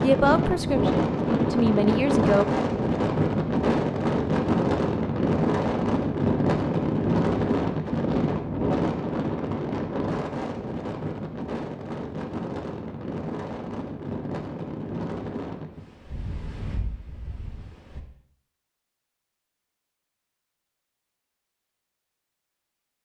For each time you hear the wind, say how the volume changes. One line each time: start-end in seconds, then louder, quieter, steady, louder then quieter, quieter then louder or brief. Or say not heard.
0.0-18.1 quieter.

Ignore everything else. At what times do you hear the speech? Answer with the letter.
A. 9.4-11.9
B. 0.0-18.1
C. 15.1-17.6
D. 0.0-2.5
D.